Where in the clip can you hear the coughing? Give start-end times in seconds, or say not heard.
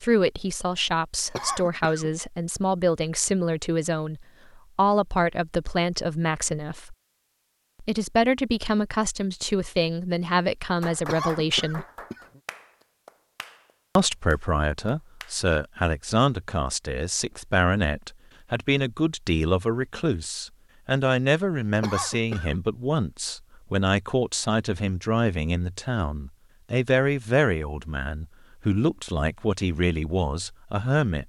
1.4-2.1, 11.1-12.4, 21.8-22.6.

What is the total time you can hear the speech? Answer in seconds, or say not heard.
28 s.